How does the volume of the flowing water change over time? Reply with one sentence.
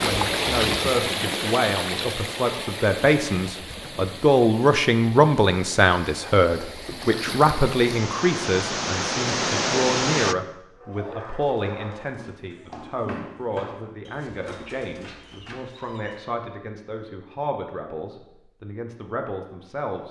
The loudness of the flowing water goes down, then up.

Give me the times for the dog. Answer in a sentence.
You can hear the dog from 10.8 to 16.2 s.